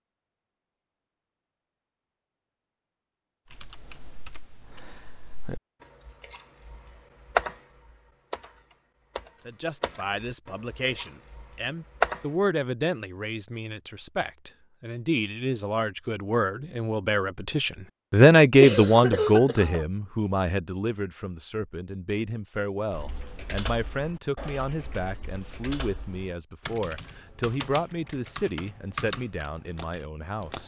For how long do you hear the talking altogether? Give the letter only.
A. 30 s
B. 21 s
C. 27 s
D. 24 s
B.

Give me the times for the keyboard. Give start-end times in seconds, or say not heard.
3.5-12.2, 22.9-30.6.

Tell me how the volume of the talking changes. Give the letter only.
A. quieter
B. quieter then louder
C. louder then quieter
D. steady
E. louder
C.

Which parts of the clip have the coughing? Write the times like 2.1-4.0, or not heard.
18.6-19.9.